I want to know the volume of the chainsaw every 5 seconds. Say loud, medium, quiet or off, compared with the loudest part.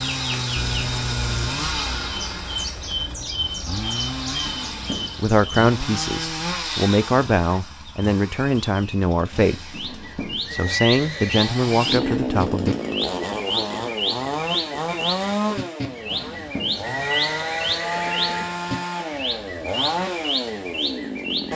loud, medium, loud, loud, loud.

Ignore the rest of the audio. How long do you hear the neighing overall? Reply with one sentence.
You can hear the neighing for 5 seconds altogether.